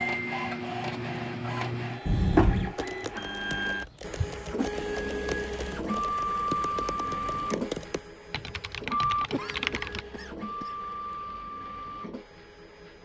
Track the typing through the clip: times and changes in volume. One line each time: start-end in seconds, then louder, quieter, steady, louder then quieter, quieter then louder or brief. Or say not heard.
2.8-10.1 louder.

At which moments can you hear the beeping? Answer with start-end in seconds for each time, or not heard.
not heard.